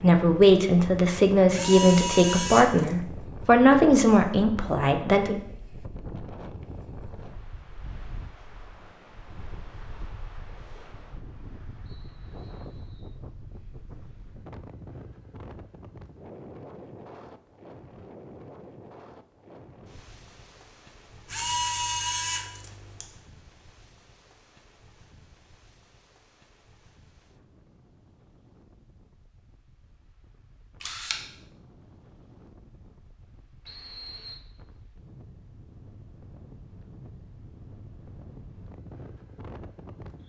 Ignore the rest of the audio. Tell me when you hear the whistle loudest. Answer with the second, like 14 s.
34 s.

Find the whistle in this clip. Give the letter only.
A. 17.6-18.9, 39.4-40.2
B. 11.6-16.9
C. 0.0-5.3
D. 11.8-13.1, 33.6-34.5
D.